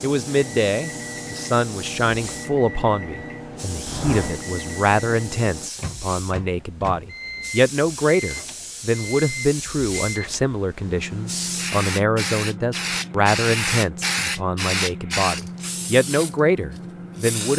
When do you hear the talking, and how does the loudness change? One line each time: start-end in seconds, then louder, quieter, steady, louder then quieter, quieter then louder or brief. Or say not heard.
0.0-17.5 steady.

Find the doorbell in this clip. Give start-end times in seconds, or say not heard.
3.9-4.5.